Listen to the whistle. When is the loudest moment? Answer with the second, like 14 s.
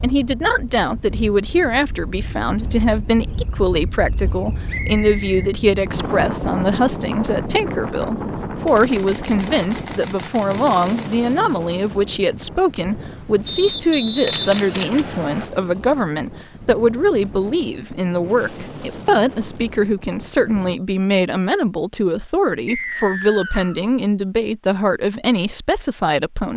14 s.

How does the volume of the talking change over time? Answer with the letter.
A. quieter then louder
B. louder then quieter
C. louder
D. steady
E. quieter
D.